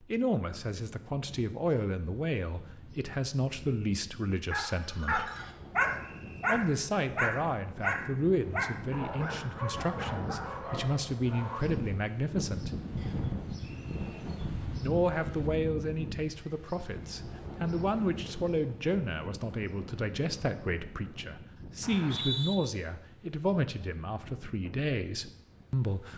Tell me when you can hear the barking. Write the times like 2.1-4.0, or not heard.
4.5-11.8.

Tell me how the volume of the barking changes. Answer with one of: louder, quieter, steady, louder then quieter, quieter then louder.
quieter.